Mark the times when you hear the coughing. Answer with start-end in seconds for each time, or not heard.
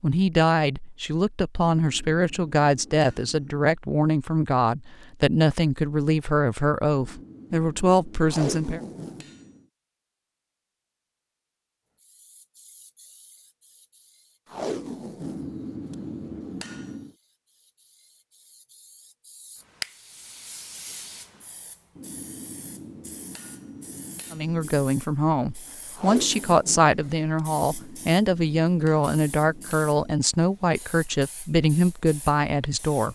not heard.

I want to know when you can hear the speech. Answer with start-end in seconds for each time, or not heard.
0.0-8.8, 24.3-33.1.